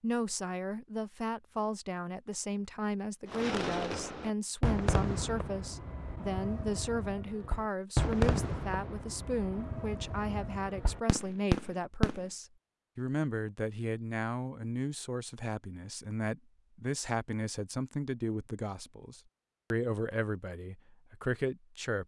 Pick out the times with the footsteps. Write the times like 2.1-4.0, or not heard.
not heard.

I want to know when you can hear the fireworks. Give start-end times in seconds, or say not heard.
3.3-12.2.